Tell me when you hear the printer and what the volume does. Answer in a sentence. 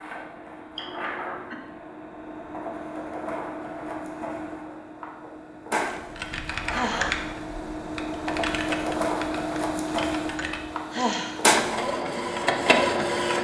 The printer can be heard from 0.0 to 13.4 s, getting louder.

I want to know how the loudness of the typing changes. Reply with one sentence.
The volume of the typing goes down.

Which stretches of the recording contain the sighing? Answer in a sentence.
You can hear the sighing from 0.8 to 1.6 s, from 6.7 to 7.2 s and from 10.9 to 11.6 s.